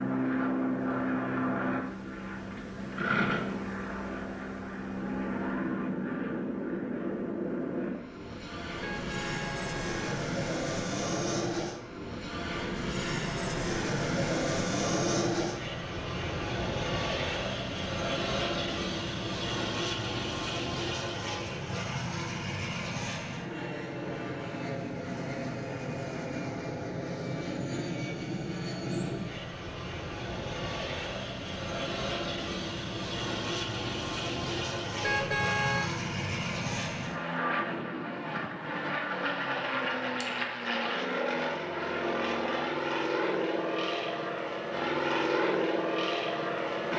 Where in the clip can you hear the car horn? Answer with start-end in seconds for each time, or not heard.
8.8-10.1, 35.0-35.9.